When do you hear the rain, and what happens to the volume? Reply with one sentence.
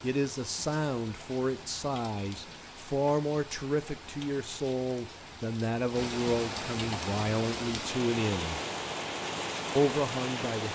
You can hear the rain from 0.0 to 10.7 s, getting louder.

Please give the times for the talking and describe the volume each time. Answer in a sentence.
The talking can be heard from 0.0 to 8.6 s, at a steady volume; and briefly from 9.8 to 10.7 s.